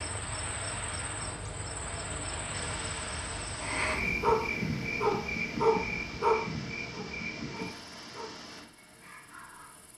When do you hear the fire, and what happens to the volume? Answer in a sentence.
You can't hear the fire here.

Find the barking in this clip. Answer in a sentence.
The barking can be heard from 4.2 to 9.8 s.